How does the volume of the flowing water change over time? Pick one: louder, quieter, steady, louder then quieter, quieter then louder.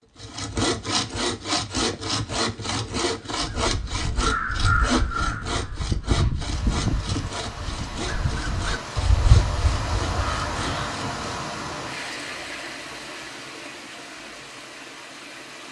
louder then quieter.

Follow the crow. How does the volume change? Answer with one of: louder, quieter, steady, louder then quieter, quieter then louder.
quieter then louder.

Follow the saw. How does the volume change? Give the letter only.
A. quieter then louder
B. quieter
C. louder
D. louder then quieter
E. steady
B.